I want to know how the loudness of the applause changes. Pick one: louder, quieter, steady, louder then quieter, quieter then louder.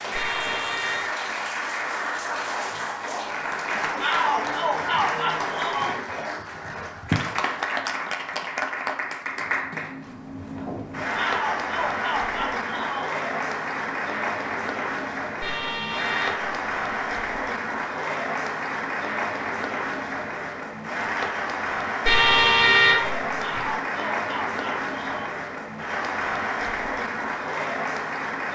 steady.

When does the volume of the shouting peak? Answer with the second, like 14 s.
4 s.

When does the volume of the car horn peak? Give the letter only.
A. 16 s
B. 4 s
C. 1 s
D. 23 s
D.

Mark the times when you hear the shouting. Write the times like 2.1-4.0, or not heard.
4.0-6.0, 11.2-13.2, 23.4-25.3.